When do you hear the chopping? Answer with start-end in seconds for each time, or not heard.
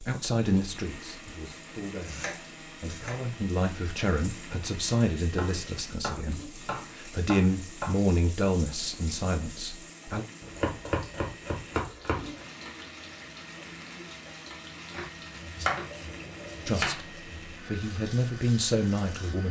2.0-3.2, 5.3-8.0, 10.4-12.4, 14.9-17.6.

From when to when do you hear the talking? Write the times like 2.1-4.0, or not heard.
0.0-10.2, 16.6-19.4.